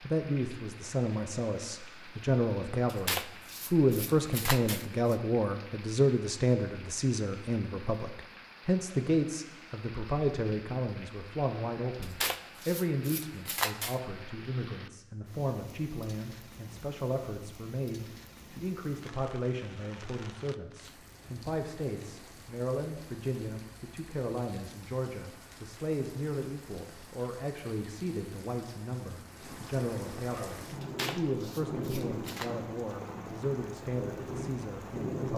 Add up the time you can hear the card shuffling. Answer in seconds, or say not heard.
6 s.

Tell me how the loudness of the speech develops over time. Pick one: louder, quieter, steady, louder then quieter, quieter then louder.
quieter.